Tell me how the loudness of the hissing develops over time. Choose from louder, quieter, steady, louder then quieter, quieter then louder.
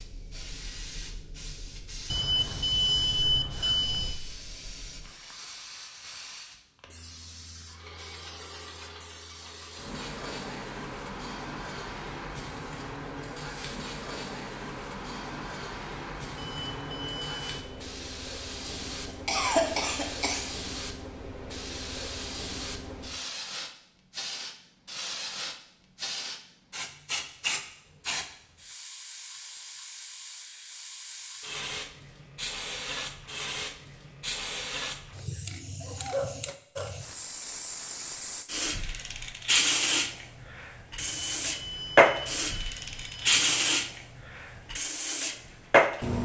louder.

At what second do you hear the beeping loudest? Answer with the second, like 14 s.
3 s.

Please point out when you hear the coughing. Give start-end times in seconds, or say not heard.
18.9-20.5.